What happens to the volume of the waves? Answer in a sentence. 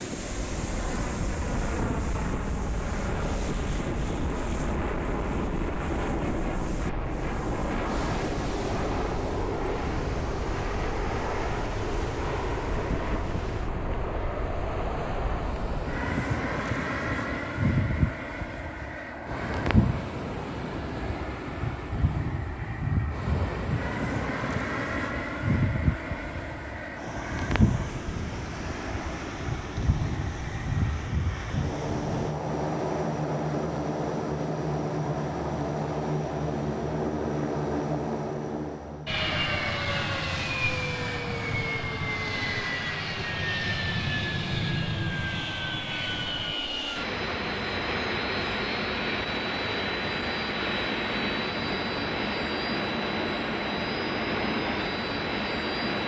The loudness of the waves stays about the same.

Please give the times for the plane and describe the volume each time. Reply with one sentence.
You can hear the plane from 0.1 to 56.0 s, at a steady volume.